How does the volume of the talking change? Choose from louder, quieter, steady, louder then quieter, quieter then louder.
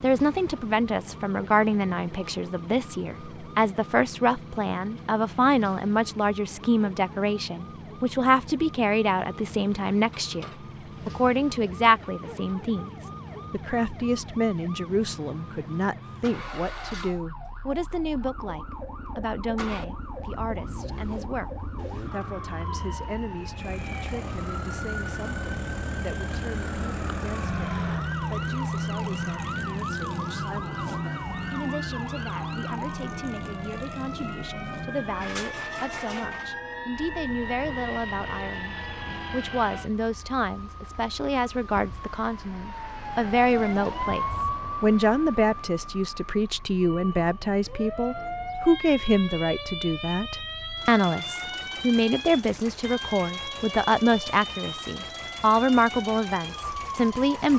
quieter then louder.